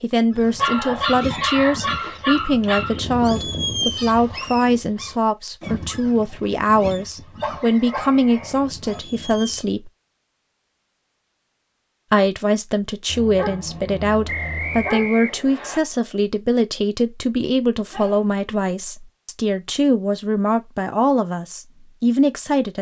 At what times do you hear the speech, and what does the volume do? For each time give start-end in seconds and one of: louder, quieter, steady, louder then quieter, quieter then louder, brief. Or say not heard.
0.0-9.9 steady
12.1-22.7 steady.